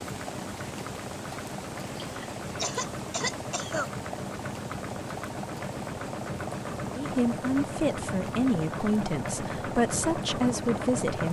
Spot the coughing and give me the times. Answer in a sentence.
The coughing can be heard from 2.0 to 3.9 s.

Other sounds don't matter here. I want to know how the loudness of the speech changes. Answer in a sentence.
The loudness of the speech stays about the same.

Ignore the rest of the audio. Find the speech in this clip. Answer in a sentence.
The speech can be heard from 7.0 to 11.2 s.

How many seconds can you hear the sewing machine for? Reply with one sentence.
You can hear the sewing machine for 11 seconds altogether.